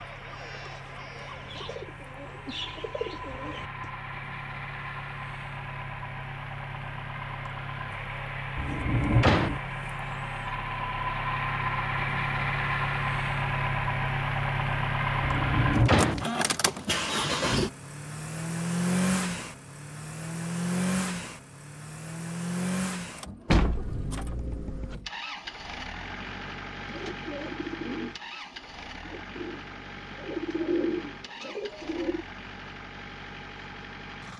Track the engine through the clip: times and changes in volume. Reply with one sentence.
The engine can be heard from 0.0 to 34.3 s, getting louder then quieter.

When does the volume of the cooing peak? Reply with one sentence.
The loudest moment of the cooing is at 31 seconds.